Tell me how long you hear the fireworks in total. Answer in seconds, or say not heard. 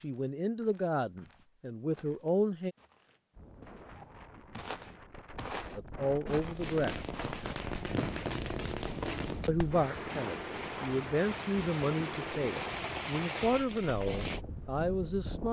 8 s.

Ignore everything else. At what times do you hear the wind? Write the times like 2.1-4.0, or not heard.
3.3-15.4.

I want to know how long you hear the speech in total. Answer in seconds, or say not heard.
10 s.